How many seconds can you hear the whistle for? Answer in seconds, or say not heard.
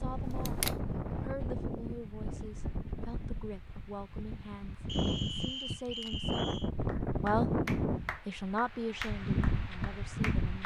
2 s.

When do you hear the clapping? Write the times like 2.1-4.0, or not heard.
6.8-10.6.